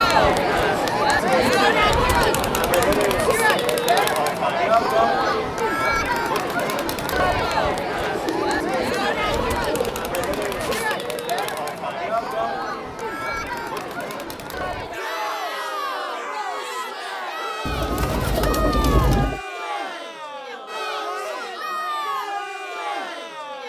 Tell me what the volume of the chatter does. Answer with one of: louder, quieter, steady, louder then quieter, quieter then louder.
quieter.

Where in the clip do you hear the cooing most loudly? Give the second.
19 s.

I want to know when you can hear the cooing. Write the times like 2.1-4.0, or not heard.
4.7-5.5, 8.0-10.9, 17.6-19.4.